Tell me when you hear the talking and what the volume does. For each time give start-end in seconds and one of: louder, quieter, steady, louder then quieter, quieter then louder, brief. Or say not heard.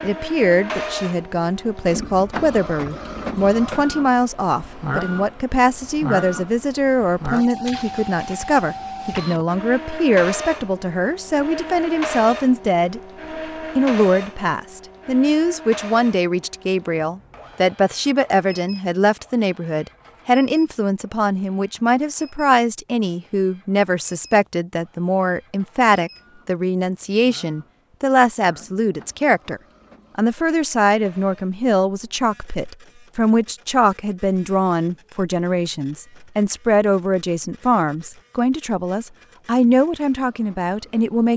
0.0-13.0 steady
13.8-41.3 steady.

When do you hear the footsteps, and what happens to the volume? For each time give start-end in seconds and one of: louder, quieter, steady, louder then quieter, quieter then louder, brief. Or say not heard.
not heard.